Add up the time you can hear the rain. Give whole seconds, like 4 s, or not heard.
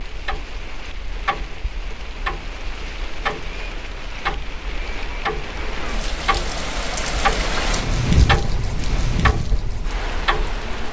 11 s.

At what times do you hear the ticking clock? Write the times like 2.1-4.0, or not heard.
0.0-10.8.